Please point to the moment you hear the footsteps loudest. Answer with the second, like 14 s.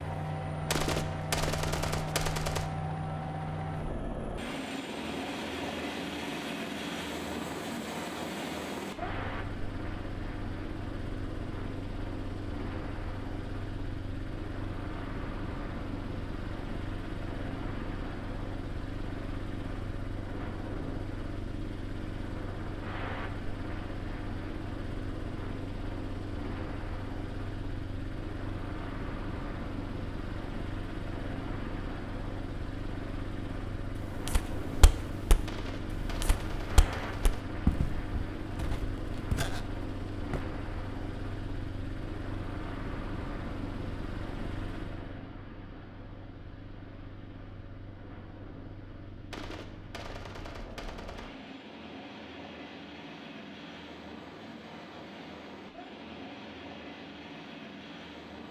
38 s.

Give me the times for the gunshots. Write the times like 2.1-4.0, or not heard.
0.7-2.7, 35.5-37.5, 49.3-51.3.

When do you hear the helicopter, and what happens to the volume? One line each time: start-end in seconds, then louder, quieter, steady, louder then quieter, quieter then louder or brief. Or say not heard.
0.0-58.4 quieter.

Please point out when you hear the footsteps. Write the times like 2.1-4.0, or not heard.
34.0-40.5.